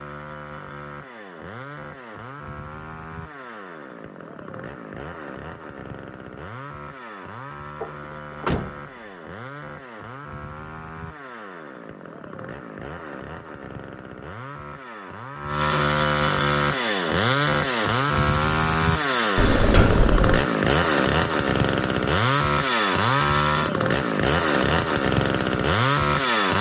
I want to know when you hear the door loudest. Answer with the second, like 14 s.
20 s.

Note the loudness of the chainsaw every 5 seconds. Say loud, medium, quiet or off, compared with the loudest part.
quiet, quiet, quiet, loud, loud, loud.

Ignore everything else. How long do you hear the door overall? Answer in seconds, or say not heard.
2 s.